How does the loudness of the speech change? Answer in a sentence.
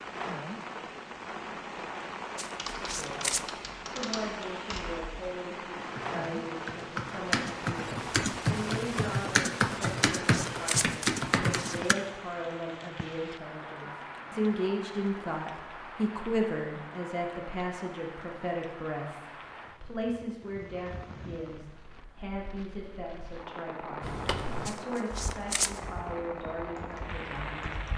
The loudness of the speech goes up, then down.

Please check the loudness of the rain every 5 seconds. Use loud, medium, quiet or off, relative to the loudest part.
loud, loud, loud, medium, medium, loud.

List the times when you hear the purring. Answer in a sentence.
You can't hear the purring here.